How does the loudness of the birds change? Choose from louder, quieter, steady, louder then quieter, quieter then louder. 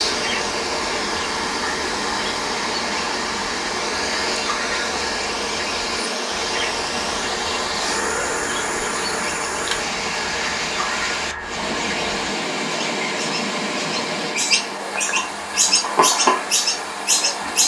louder.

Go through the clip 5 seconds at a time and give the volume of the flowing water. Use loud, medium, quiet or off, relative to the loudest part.
loud, loud, loud, medium.